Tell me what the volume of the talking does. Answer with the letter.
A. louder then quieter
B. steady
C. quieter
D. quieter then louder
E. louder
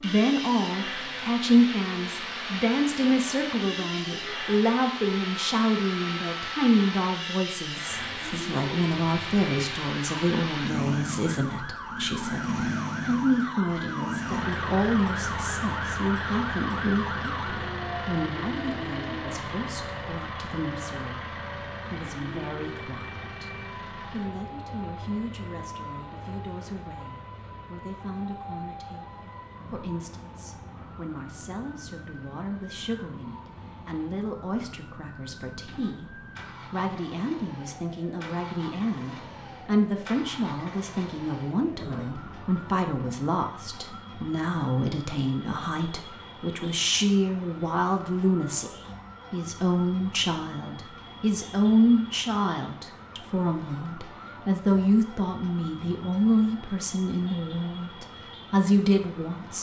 D.